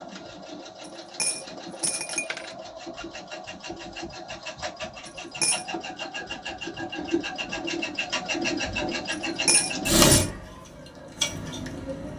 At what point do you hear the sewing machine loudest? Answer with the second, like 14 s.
10 s.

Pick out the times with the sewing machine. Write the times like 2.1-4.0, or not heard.
0.0-12.1.